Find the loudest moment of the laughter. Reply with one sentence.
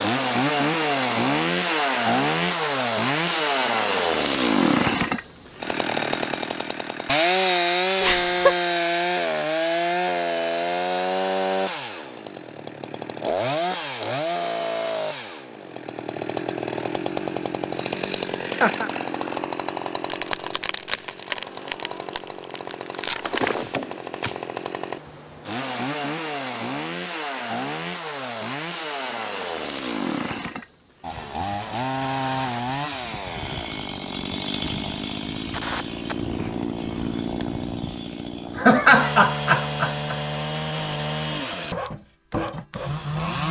The loudest moment of the laughter is at 39 seconds.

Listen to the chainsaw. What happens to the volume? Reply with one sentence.
The volume of the chainsaw goes down.